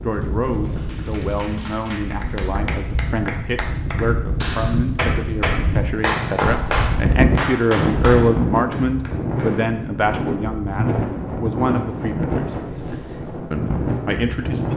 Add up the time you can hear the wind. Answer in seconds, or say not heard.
15 s.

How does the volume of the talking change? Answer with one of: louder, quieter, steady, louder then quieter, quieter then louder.
louder then quieter.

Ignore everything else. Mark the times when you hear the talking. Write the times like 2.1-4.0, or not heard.
0.0-14.7.